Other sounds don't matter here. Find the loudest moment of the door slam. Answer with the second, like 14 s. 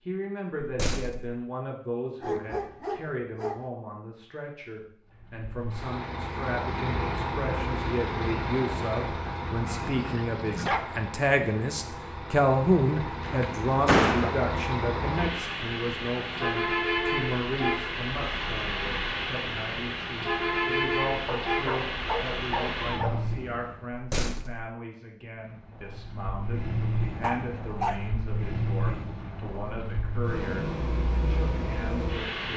14 s.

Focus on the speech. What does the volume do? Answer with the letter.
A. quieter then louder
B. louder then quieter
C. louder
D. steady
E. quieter
B.